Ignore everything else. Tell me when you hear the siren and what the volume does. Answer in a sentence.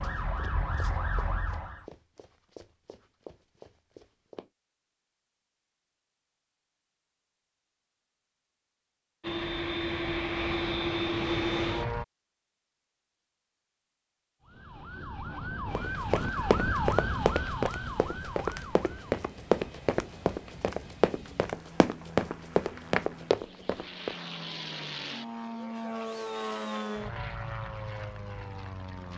The siren can be heard briefly from 0.0 to 1.9 s; and from 14.4 to 19.1 s, getting louder then quieter.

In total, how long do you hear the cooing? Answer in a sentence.
You can't hear the cooing here.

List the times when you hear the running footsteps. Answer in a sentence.
You can hear the running footsteps from 0.0 to 4.5 s and from 15.8 to 24.1 s.